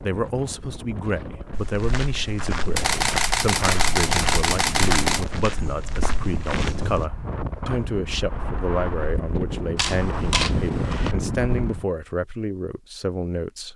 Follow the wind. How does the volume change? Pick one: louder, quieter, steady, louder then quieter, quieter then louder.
louder.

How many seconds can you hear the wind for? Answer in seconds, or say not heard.
12 s.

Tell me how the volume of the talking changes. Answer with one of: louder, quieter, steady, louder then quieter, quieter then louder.
steady.